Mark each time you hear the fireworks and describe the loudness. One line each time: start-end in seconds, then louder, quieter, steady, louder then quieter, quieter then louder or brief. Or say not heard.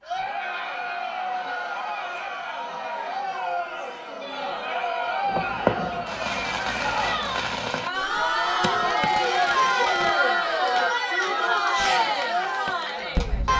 5.2-13.5 quieter then louder.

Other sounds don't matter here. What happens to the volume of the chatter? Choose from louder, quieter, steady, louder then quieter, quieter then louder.
louder.